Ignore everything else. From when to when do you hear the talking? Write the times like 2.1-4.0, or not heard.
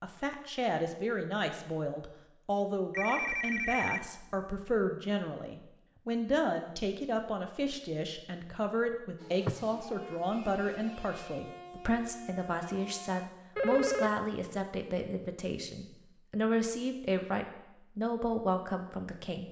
0.0-19.4.